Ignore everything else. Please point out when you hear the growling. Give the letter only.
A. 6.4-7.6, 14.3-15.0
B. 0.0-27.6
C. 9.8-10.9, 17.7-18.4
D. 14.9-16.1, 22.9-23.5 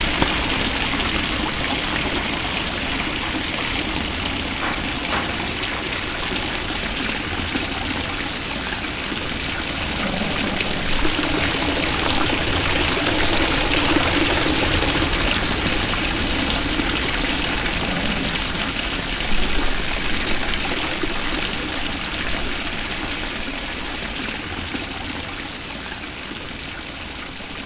C.